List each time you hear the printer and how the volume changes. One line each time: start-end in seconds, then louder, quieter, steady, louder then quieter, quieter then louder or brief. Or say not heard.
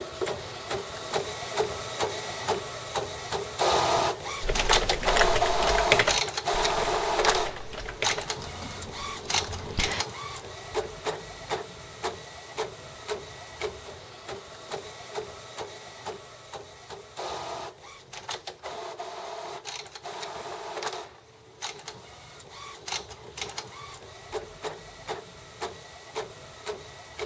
0.0-27.2 quieter.